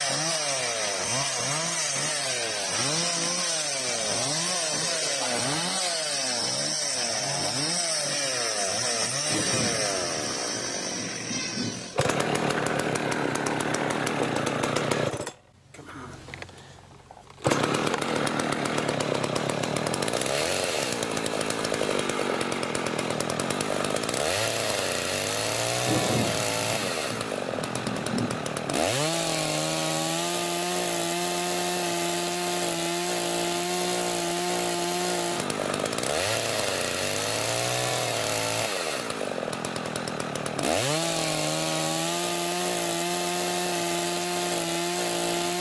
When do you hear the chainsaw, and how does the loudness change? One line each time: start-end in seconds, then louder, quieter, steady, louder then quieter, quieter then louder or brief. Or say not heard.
0.0-45.5 steady.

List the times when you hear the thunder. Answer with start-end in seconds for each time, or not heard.
9.2-11.9, 25.9-28.4.